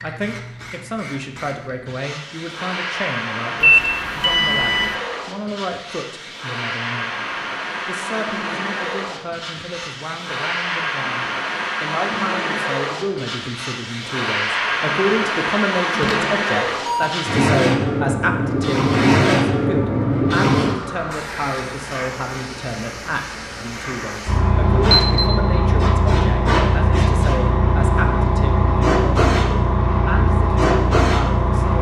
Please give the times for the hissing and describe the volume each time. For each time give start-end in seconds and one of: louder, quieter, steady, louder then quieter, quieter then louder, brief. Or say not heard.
0.0-31.7 louder.